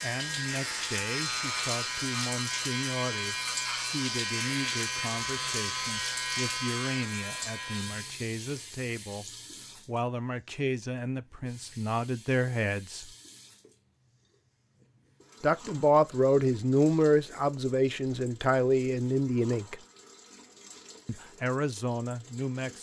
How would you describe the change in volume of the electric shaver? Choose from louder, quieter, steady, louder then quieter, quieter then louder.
steady.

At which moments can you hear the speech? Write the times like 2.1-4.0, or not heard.
0.0-13.1, 15.4-19.8, 21.1-22.7.